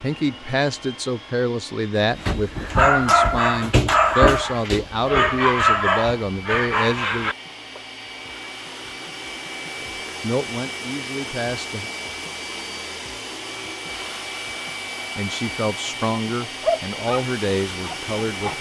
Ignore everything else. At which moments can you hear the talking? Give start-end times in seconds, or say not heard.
0.0-7.3, 10.2-11.9, 15.2-18.5.